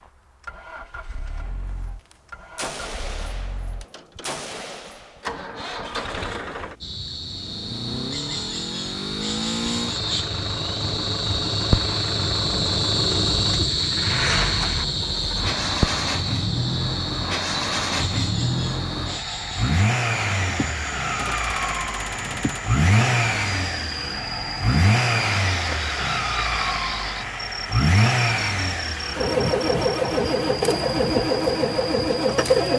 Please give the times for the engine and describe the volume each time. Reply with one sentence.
The engine can be heard from 0.0 to 32.7 s, getting louder.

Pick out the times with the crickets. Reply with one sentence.
You can hear the crickets from 6.8 to 32.7 s.